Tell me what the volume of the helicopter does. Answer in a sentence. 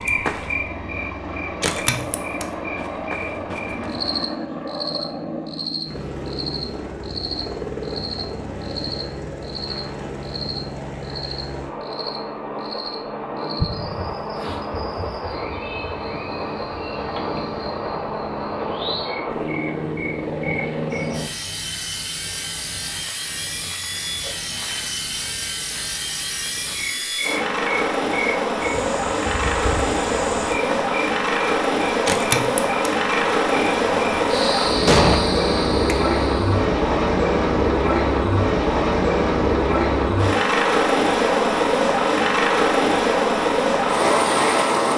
The loudness of the helicopter goes up.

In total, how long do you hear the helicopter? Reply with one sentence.
The helicopter can be heard for 45 seconds in total.